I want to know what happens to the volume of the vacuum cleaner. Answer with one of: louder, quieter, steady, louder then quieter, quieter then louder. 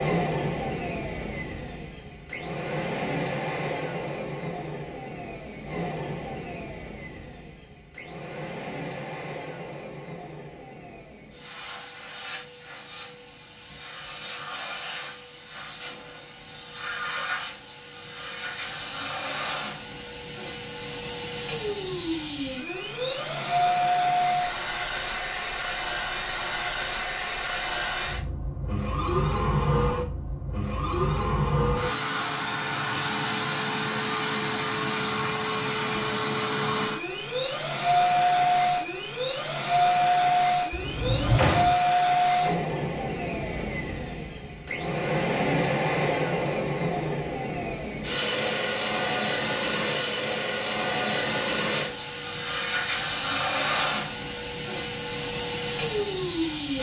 louder.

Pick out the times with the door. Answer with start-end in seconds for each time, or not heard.
40.7-41.8.